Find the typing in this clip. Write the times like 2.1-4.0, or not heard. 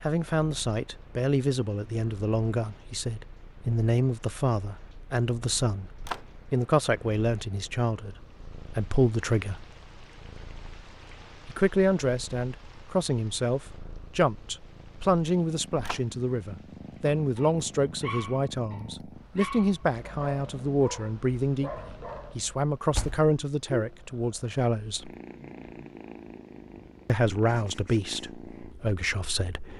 not heard.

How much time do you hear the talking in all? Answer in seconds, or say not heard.
25 s.